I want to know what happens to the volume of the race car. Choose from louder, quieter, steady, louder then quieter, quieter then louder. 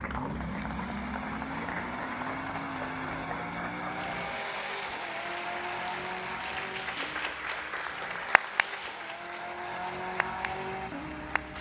quieter then louder.